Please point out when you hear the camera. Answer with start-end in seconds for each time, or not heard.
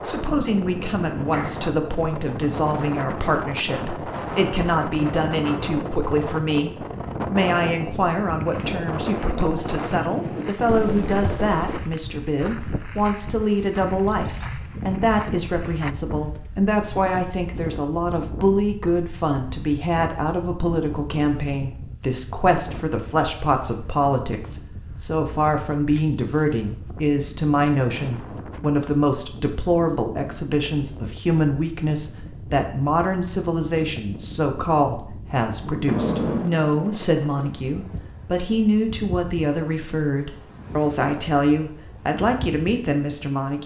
10.7-11.8, 25.9-26.5, 35.9-36.5.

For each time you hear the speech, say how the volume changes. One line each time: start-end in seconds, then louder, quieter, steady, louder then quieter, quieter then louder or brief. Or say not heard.
0.0-43.6 steady.